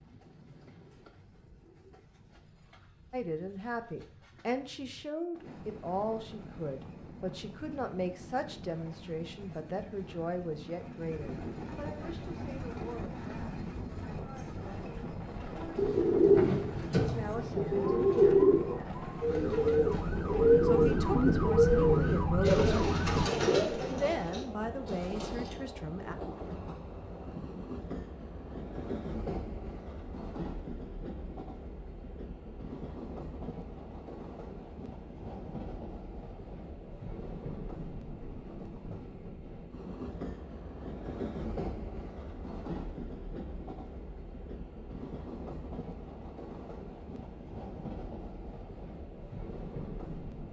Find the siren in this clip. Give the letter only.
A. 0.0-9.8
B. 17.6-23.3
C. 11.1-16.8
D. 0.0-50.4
B.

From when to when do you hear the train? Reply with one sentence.
You can hear the train from 0.0 to 50.4 s.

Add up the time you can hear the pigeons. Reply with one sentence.
The pigeons can be heard for 10 seconds in total.